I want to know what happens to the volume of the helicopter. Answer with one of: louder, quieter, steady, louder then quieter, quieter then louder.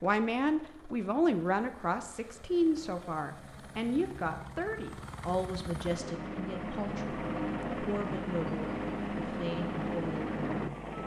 louder.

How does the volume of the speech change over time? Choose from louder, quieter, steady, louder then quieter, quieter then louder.
quieter.